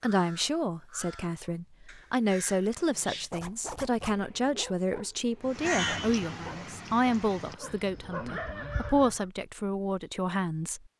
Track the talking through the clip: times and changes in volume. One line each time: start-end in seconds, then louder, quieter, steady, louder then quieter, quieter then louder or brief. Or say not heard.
0.0-10.8 steady.